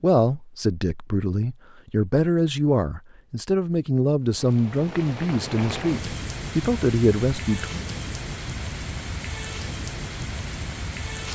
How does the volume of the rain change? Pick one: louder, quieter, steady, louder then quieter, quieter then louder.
steady.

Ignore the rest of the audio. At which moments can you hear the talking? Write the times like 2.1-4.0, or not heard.
0.0-7.7.